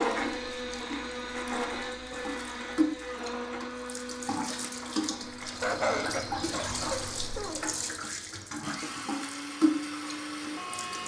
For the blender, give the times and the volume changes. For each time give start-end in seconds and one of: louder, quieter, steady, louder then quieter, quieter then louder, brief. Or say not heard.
0.0-11.0 quieter then louder.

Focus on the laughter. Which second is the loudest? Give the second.
6 s.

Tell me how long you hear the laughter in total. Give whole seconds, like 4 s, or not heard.
2 s.